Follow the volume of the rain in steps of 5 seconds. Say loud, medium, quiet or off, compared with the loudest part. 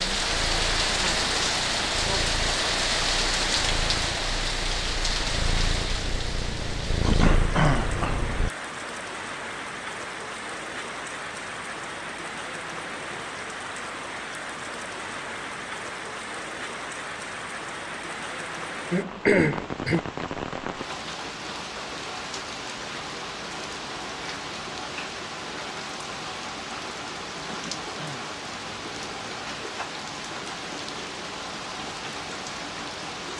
loud, medium, medium, medium, medium, medium, medium.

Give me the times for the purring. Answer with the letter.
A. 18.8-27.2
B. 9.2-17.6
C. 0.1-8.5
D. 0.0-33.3
C.